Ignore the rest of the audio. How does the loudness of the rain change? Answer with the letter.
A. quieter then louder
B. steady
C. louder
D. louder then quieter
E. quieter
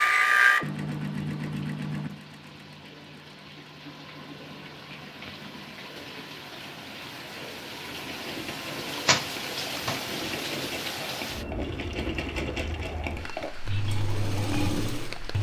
D.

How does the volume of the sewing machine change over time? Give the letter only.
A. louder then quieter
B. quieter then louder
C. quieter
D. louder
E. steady
B.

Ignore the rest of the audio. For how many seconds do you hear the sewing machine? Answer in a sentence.
You can hear the sewing machine for 15 seconds altogether.